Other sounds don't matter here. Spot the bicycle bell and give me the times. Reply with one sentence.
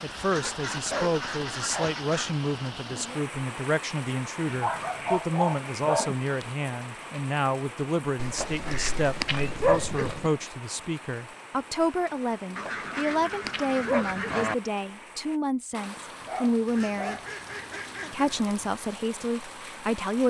You can't hear the bicycle bell here.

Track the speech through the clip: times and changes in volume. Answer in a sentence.
The speech can be heard from 0.0 to 17.2 s, at a steady volume; and briefly from 18.1 to 20.2 s.